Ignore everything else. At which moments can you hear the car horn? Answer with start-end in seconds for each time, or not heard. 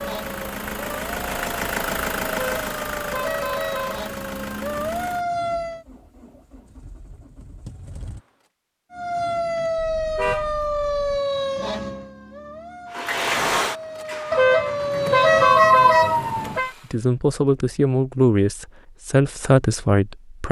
2.3-4.0, 9.8-11.2, 14.3-16.7.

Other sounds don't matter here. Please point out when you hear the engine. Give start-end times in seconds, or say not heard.
0.0-8.3, 12.9-17.0.